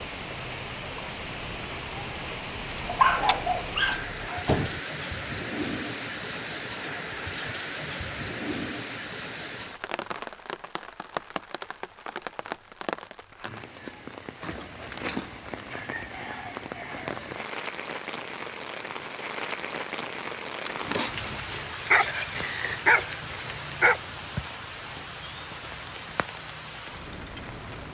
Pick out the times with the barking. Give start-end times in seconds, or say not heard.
2.9-4.8, 21.4-24.0.